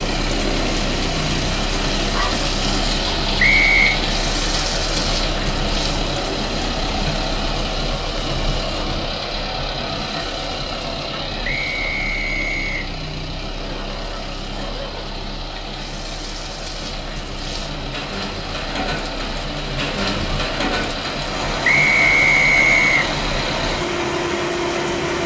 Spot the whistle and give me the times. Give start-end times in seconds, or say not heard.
3.4-4.0, 11.4-12.9, 21.6-23.1.